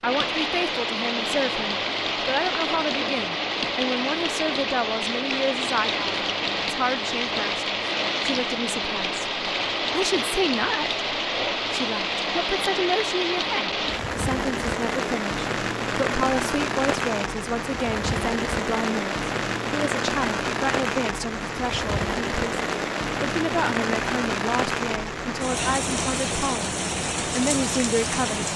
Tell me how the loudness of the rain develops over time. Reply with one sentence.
The loudness of the rain stays about the same.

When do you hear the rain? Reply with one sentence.
The rain can be heard from 0.0 to 28.5 s.